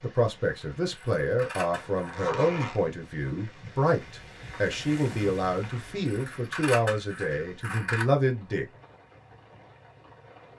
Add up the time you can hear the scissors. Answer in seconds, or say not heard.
3 s.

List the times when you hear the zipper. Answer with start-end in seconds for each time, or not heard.
1.7-2.9.